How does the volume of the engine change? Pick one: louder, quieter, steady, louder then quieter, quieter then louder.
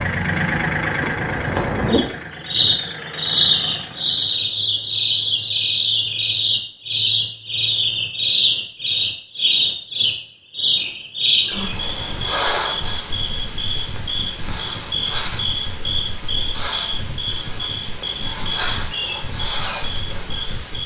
quieter.